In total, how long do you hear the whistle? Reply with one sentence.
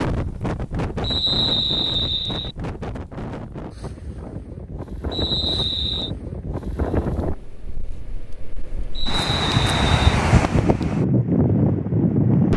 You can hear the whistle for 4 seconds altogether.